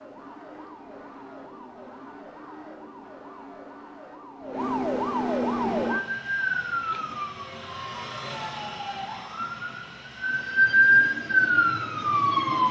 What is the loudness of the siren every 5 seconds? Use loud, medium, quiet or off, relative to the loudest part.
quiet, medium, loud.